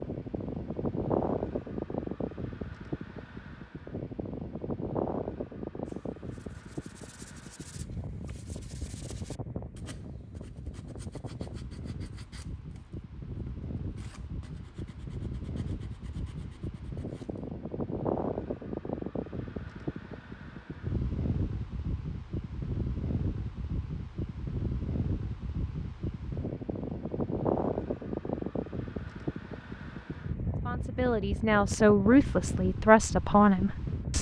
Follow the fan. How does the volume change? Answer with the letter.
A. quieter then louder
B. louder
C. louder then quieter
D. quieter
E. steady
A.